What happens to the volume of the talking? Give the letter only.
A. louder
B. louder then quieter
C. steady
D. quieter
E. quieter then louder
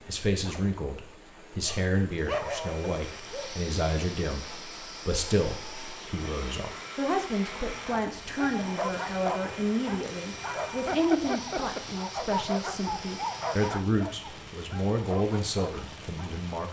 C.